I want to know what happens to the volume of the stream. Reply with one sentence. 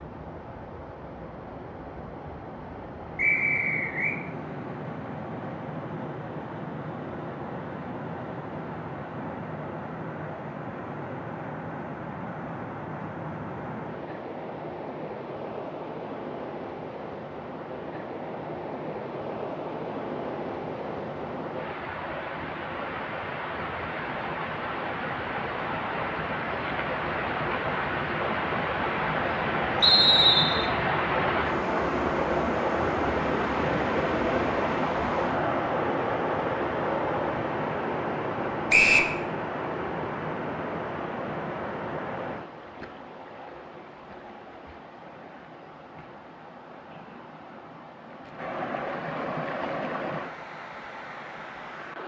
The volume of the stream goes up, then down.